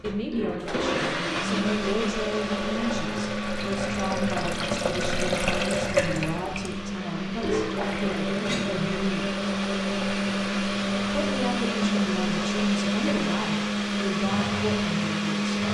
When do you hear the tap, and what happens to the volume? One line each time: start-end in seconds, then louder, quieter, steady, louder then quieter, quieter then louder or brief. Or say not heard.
0.1-15.7 louder then quieter.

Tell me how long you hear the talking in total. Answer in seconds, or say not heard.
14 s.